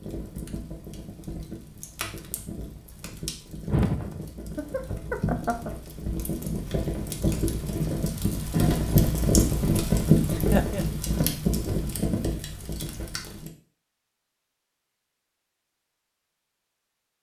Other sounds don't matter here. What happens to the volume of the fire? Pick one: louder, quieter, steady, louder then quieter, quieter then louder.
louder then quieter.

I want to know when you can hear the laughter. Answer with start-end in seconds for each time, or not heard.
3.6-5.8, 10.3-10.8.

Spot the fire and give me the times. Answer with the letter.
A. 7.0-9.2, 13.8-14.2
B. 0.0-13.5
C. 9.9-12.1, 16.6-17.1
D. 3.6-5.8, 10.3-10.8
B.